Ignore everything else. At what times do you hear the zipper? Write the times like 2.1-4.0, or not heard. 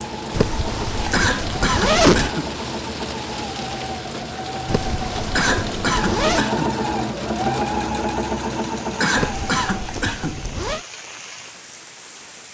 0.3-2.3, 4.7-6.5, 9.2-10.8.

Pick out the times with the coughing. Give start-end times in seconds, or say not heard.
1.1-2.5, 5.3-6.8, 9.0-10.4.